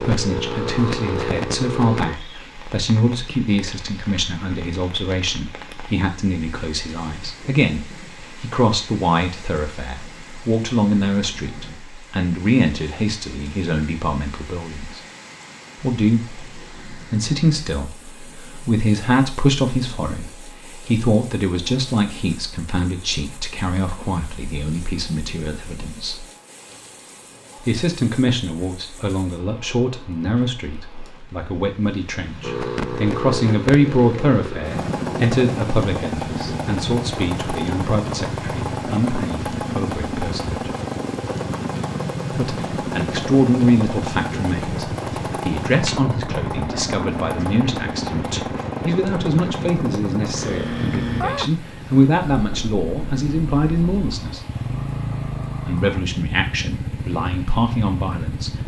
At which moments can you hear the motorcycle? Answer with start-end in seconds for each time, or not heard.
0.0-2.1, 32.4-58.6.